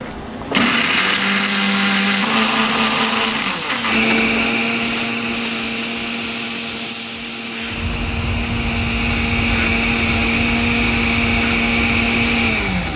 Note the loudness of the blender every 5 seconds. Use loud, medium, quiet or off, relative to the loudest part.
loud, medium, loud.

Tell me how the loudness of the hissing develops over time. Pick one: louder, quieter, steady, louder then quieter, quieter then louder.
quieter.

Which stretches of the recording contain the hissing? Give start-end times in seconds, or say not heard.
0.0-12.9.